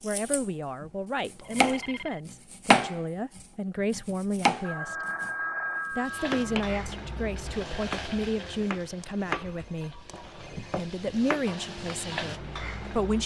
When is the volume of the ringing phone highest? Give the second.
6 s.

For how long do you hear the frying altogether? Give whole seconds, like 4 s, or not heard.
7 s.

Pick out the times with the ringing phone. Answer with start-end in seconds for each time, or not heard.
1.4-2.2, 4.6-6.5, 9.0-10.8.